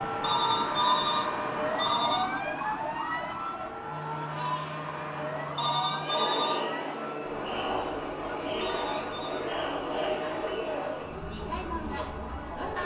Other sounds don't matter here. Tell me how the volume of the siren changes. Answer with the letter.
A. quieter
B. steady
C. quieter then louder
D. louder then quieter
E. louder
A.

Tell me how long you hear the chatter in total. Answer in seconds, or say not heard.
9 s.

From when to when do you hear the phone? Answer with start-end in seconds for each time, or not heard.
0.2-2.4, 5.5-6.7, 8.6-9.5.